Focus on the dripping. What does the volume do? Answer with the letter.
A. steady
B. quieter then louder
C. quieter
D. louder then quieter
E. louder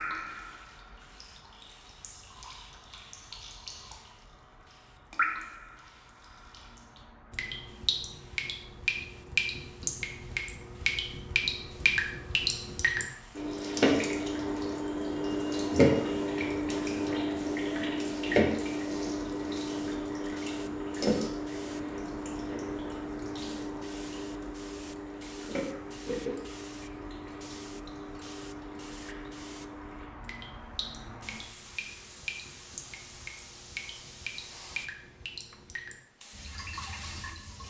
D.